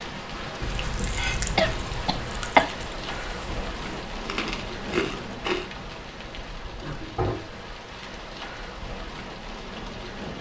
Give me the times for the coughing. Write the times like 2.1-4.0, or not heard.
1.6-2.6, 6.8-7.7.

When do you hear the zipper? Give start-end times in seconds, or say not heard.
not heard.